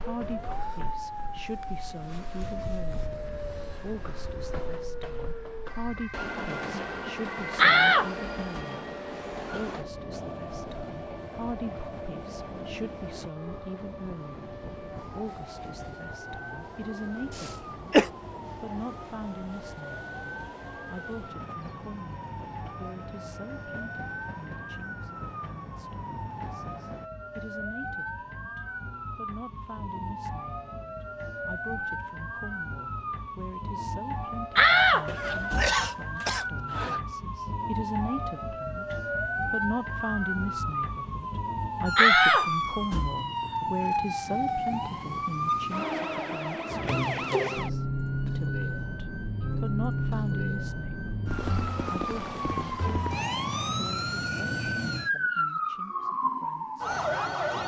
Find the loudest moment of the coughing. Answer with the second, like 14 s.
18 s.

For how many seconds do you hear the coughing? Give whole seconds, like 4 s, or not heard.
3 s.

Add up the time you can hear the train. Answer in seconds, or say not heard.
27 s.